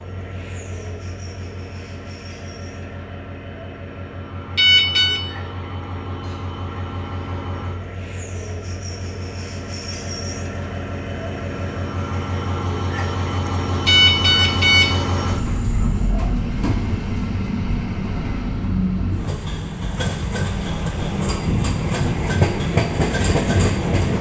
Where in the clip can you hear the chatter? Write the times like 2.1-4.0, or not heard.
not heard.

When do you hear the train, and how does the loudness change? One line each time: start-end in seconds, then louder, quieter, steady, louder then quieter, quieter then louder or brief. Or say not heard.
0.0-24.1 louder.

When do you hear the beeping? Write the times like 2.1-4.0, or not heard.
4.5-5.2, 13.8-14.9.